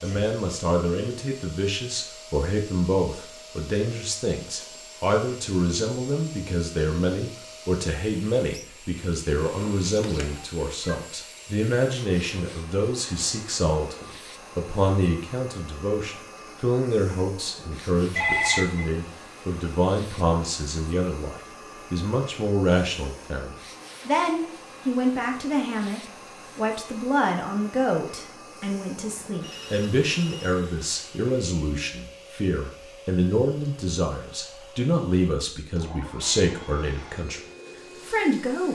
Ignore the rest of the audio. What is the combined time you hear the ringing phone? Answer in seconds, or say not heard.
4 s.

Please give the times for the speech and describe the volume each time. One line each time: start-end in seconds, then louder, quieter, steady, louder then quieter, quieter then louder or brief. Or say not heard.
0.0-37.4 steady
38.0-38.7 brief.